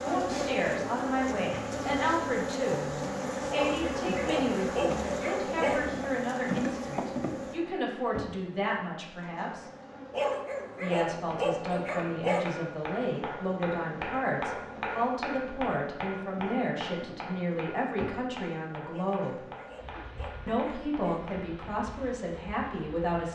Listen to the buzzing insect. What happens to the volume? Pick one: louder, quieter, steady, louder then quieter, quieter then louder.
quieter.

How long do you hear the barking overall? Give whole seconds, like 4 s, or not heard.
7 s.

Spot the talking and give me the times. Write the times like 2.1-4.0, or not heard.
0.0-9.7, 10.8-19.4, 20.4-23.3.